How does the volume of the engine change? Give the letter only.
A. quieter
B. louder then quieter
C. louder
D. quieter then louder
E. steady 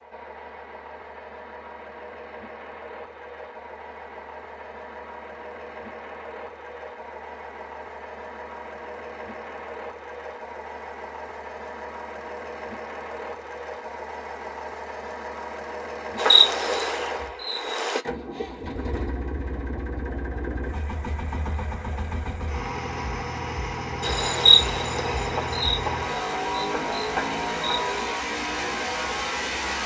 C.